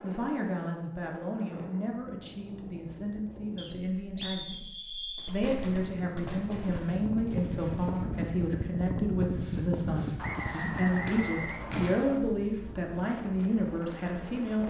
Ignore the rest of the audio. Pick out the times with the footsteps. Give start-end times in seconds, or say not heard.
not heard.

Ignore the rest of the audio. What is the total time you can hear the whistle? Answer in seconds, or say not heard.
4 s.